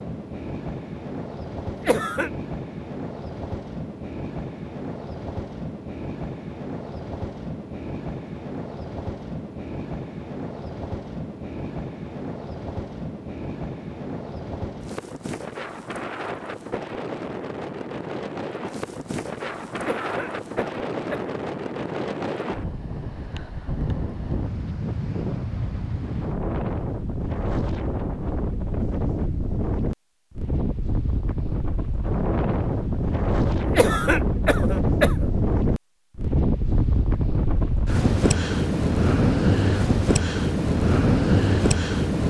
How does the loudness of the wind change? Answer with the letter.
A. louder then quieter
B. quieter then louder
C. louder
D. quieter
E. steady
C.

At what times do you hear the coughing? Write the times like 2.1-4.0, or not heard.
1.8-2.3, 19.8-21.4, 33.6-35.3.